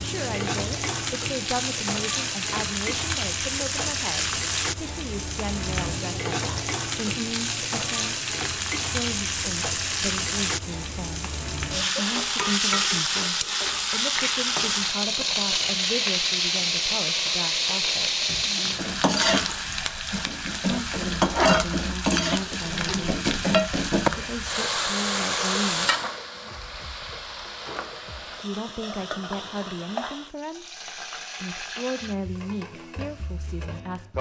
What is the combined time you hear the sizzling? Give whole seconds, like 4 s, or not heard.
34 s.